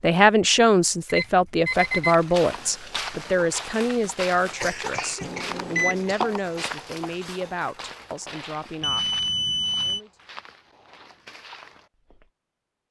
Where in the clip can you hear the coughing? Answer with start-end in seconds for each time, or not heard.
4.5-6.4.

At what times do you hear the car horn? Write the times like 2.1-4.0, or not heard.
not heard.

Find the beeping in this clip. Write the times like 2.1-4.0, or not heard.
1.1-2.2, 5.2-6.1, 8.8-10.0.